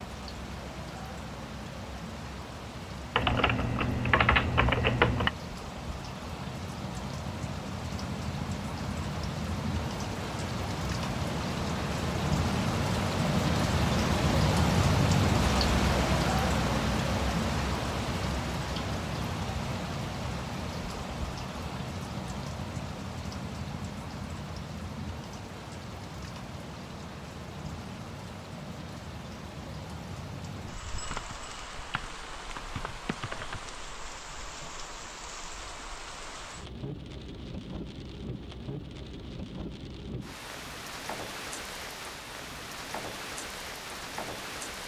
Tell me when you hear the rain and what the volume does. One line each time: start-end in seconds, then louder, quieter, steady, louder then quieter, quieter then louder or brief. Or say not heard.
0.0-44.8 louder then quieter.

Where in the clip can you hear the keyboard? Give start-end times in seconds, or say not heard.
3.1-5.3, 31.1-33.6.